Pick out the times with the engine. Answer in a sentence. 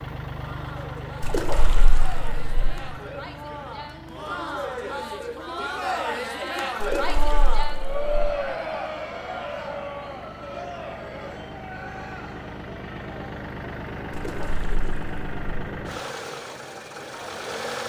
The engine can be heard from 0.0 to 17.8 s.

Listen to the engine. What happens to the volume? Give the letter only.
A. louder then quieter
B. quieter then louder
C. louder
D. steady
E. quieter
B.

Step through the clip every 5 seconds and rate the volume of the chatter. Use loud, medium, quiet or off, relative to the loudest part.
medium, loud, medium, quiet.